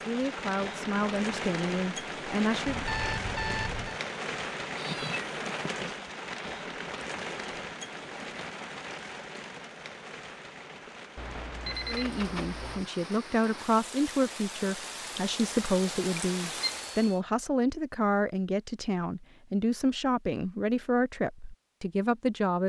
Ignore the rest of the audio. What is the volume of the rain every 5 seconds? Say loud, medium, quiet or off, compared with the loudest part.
loud, loud, medium, loud, off.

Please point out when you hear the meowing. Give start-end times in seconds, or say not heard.
4.8-5.8, 11.9-12.6.